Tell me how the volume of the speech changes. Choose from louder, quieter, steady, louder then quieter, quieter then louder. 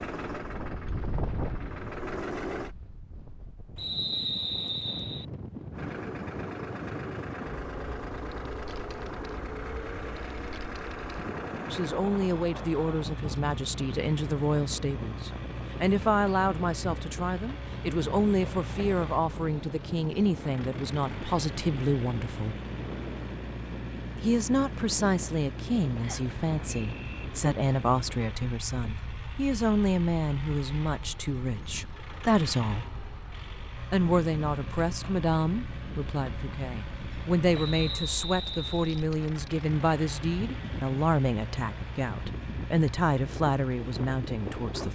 steady.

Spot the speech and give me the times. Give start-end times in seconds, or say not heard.
11.7-22.6, 24.2-32.9, 33.9-44.8.